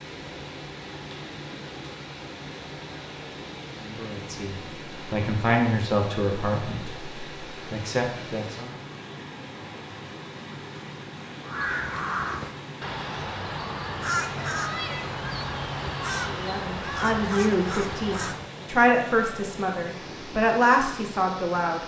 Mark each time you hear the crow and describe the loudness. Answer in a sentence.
You can hear the crow from 11.4 to 18.5 s, at a steady volume.